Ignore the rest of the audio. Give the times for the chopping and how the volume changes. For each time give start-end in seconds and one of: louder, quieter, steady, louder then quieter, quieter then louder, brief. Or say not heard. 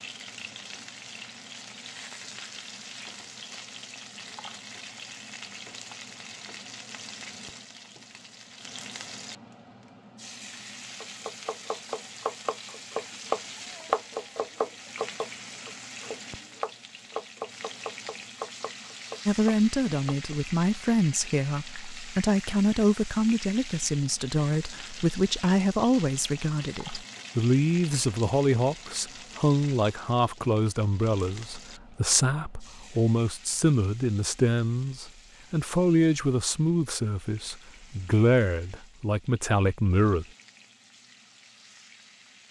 11.0-20.4 louder then quieter.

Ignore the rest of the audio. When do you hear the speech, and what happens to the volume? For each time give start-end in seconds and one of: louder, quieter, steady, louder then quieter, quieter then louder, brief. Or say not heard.
19.2-40.2 steady.